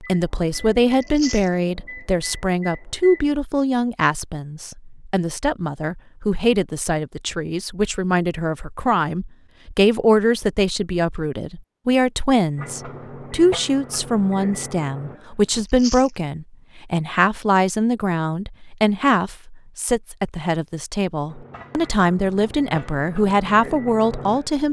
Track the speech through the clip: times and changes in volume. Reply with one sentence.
You can hear the speech from 0.0 to 24.6 s, at a steady volume.